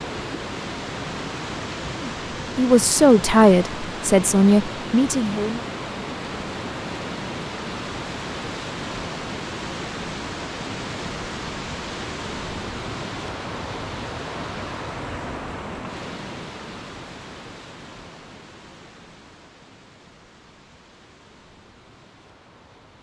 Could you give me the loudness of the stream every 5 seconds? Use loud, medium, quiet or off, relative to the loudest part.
loud, loud, loud, medium, quiet.